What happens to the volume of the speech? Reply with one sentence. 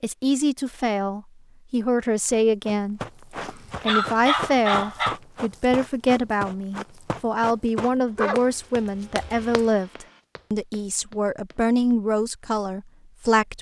The volume of the speech stays about the same.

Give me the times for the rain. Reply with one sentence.
You can't hear the rain here.